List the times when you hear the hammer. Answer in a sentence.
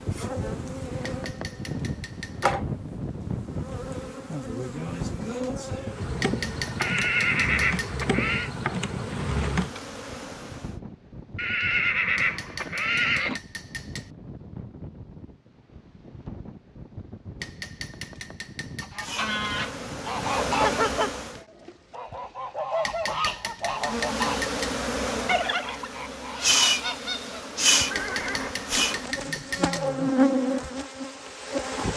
The hammer can be heard from 1.1 to 2.5 s, from 6.2 to 8.1 s, from 12.2 to 14.1 s, from 17.4 to 19.1 s, from 22.9 to 24.8 s and from 27.9 to 29.9 s.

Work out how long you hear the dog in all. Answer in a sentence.
The dog can't be heard in this clip.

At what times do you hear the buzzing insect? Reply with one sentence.
The buzzing insect can be heard from 0.0 to 10.8 s, from 19.0 to 21.4 s and from 23.8 to 31.9 s.